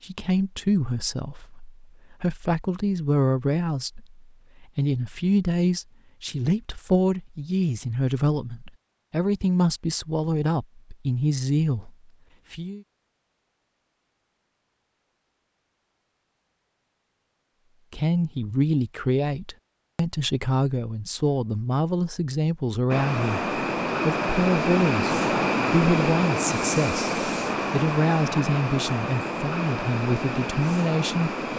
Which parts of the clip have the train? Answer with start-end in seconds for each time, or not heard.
22.9-31.5.